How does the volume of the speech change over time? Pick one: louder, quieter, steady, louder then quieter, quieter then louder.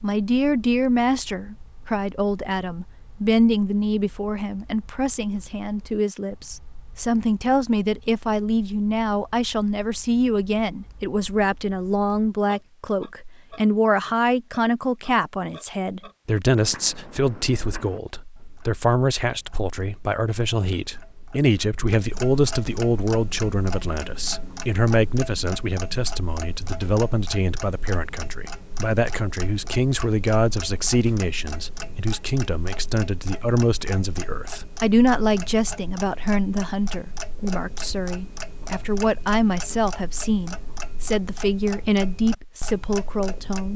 steady.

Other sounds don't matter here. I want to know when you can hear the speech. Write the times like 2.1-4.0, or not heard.
0.0-43.7.